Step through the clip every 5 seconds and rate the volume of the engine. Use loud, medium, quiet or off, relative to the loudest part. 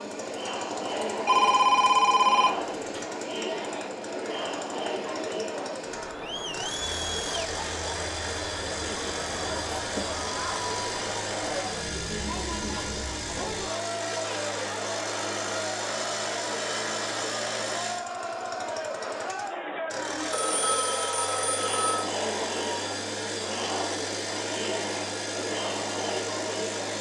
medium, loud, loud, loud, loud, loud.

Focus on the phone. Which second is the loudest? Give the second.
2 s.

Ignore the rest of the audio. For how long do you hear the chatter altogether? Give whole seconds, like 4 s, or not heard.
27 s.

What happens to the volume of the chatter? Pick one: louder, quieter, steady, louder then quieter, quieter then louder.
steady.